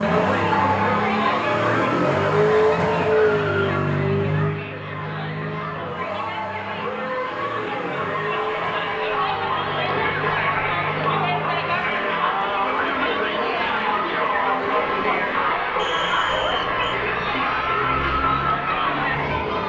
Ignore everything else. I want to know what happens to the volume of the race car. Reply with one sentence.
The volume of the race car goes down.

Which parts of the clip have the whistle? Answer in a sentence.
The whistle can be heard from 15.8 to 17.0 s.